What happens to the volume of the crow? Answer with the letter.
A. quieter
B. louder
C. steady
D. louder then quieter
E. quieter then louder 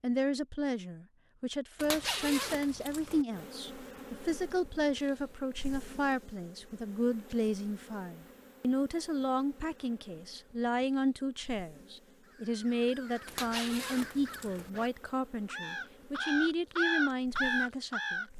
B.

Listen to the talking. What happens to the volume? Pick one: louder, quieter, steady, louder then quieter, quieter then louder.
steady.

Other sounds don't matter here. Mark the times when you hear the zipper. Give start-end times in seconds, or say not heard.
1.8-3.2, 13.2-14.7.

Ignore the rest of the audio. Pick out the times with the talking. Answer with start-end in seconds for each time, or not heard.
0.0-18.2.